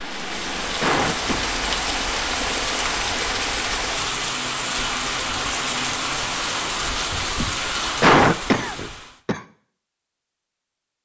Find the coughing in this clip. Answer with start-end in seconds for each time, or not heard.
0.8-1.6, 8.0-9.4.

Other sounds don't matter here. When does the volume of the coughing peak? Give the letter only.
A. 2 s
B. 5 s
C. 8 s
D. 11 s
C.